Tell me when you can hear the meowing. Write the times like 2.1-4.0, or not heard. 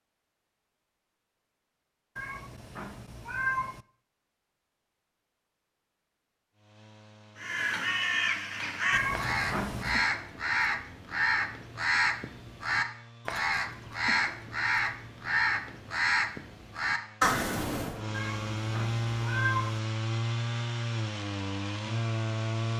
2.1-3.9, 8.9-10.1, 18.1-19.8.